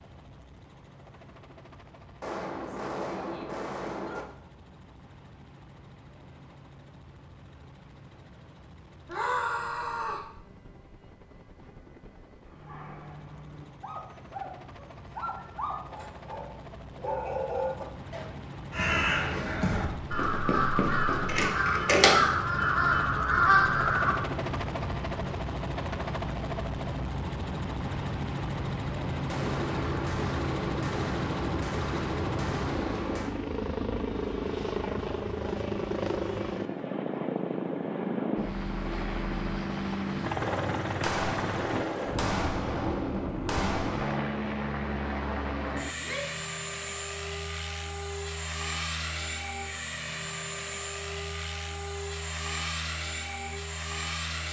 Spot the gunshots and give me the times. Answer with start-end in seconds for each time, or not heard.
2.2-4.2, 29.2-33.4, 40.4-44.2.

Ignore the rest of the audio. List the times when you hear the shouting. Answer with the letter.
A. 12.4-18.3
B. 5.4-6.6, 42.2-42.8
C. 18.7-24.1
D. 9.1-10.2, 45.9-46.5
D.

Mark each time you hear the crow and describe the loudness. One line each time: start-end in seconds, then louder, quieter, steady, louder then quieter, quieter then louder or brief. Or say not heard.
18.7-24.1 louder.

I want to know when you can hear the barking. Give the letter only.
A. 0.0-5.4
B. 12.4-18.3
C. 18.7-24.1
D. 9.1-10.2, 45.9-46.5
B.